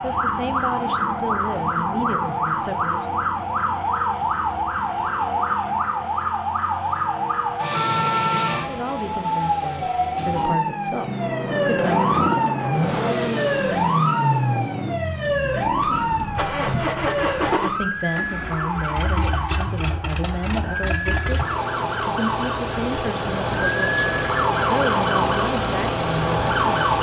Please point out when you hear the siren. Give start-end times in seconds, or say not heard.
0.0-26.9.